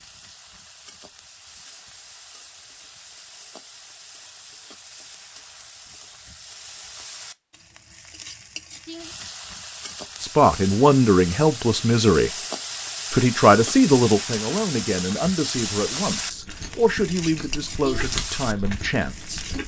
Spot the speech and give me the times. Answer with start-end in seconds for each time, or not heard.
10.2-12.3, 13.1-19.4.